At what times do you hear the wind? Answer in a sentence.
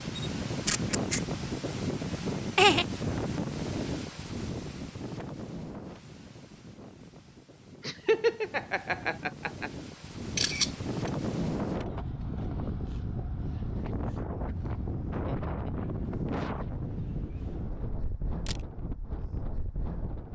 You can hear the wind from 0.0 to 20.3 s.